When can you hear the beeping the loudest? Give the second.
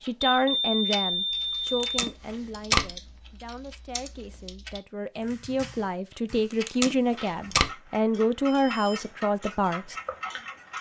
1 s.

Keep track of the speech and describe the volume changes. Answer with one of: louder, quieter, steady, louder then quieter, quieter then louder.
quieter then louder.